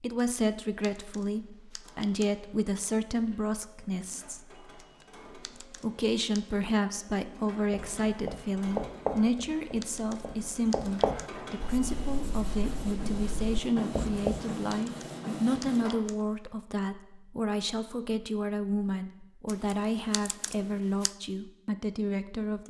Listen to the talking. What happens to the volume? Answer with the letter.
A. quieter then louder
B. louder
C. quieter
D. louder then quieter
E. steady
E.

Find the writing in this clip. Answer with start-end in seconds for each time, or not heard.
7.7-14.6.